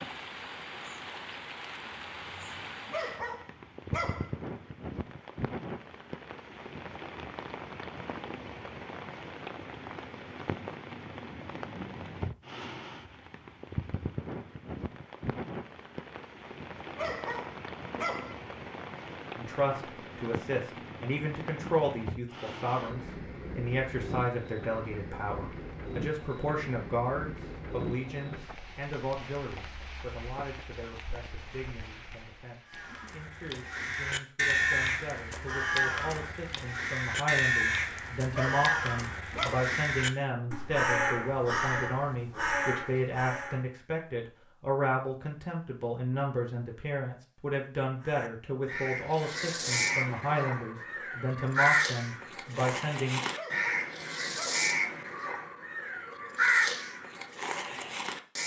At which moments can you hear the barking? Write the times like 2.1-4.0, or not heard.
2.9-4.3, 16.9-18.4, 38.3-39.7, 53.3-54.7.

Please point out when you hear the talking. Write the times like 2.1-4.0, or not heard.
19.4-53.2.